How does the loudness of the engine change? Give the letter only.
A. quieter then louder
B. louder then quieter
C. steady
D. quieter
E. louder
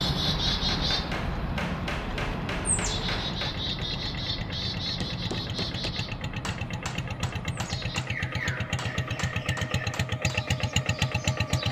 E.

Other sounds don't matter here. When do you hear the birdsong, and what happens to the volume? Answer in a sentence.
The birdsong can be heard from 0.0 to 11.6 s, getting quieter.